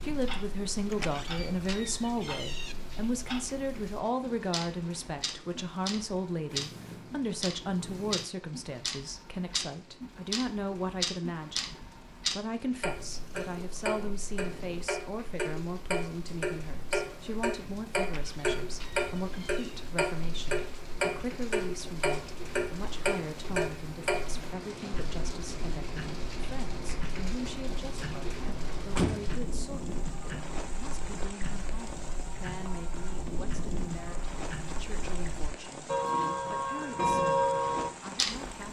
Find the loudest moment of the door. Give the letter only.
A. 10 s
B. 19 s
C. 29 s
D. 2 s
C.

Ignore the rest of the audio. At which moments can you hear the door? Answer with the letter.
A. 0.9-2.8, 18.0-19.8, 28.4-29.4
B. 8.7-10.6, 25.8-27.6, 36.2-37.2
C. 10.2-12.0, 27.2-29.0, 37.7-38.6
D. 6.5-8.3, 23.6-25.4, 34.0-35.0
A.